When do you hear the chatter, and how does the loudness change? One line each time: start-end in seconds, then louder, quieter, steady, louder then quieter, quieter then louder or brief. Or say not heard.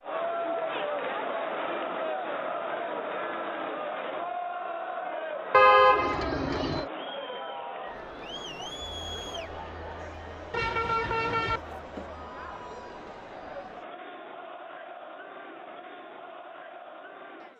0.0-17.5 quieter.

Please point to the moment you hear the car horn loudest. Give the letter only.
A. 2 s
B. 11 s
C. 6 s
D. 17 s
C.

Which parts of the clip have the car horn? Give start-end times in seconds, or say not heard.
5.5-6.8, 10.5-11.6.